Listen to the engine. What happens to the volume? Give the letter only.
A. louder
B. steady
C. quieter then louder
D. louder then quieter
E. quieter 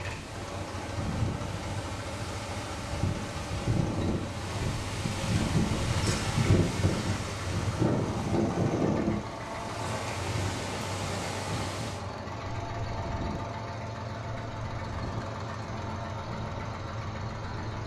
B.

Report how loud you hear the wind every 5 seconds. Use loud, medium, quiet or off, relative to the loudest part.
medium, loud, medium, quiet.